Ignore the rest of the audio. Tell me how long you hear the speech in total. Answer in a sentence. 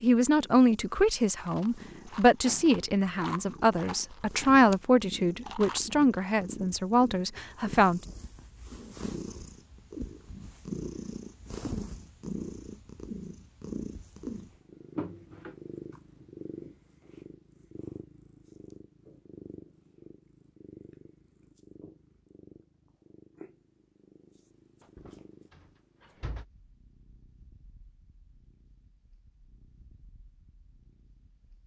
The speech can be heard for 8 seconds in total.